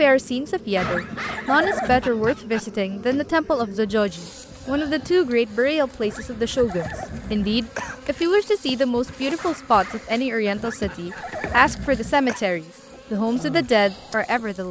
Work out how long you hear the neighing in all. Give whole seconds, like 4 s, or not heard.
5 s.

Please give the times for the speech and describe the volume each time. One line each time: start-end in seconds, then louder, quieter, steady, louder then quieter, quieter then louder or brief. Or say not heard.
0.0-14.6 steady.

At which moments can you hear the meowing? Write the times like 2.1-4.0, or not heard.
not heard.